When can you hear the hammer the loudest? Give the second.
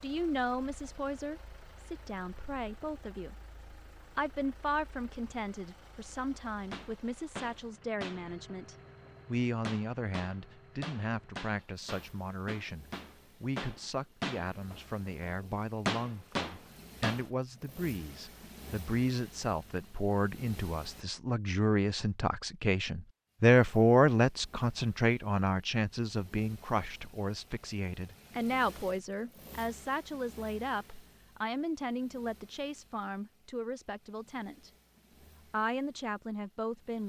16 s.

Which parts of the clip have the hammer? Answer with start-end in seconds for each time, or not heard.
6.7-17.2.